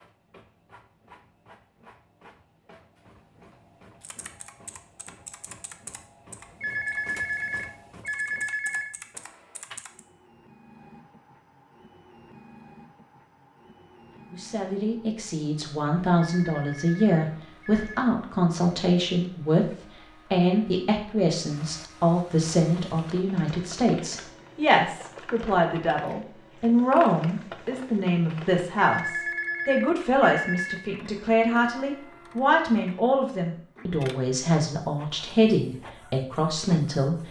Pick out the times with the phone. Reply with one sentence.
The phone can be heard from 6.6 to 8.9 s, from 16.1 to 18.1 s and from 28.8 to 30.9 s.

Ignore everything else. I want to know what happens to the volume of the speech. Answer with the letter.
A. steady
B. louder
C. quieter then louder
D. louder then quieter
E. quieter
A.